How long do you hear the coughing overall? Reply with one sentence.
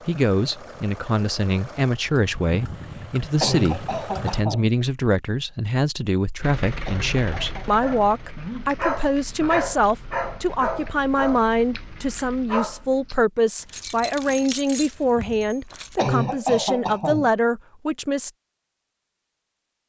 The coughing can be heard for 4 seconds in total.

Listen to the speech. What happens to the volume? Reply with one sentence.
The loudness of the speech stays about the same.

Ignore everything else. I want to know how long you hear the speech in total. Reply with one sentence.
The speech can be heard for 18 seconds in total.